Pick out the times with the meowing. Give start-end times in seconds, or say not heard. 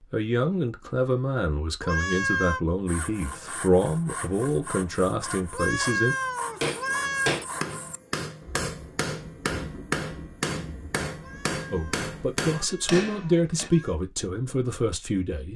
1.8-2.6, 5.5-7.3, 11.2-13.9.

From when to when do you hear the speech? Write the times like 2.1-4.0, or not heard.
0.0-6.2, 11.7-15.5.